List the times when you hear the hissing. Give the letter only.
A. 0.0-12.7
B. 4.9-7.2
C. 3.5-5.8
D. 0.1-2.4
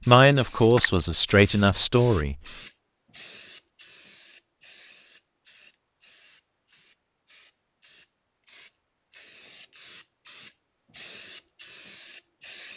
A.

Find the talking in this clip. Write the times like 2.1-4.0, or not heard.
0.1-2.4.